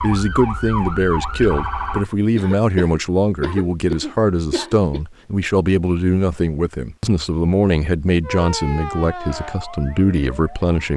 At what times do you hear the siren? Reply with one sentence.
You can hear the siren from 0.0 to 2.0 s and from 8.2 to 10.8 s.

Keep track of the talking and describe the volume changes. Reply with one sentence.
The volume of the talking stays about the same.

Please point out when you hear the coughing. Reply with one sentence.
The coughing can be heard from 2.4 to 5.0 s.